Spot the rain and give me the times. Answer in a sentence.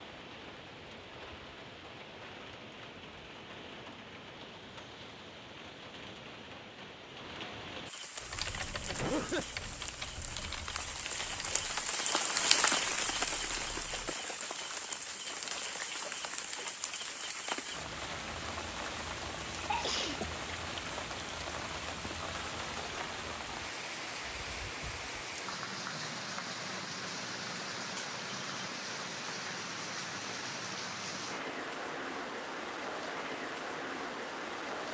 You can hear the rain from 0.0 to 34.8 s.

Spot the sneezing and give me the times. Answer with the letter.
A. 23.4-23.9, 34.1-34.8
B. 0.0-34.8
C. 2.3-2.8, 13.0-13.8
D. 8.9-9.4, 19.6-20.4
D.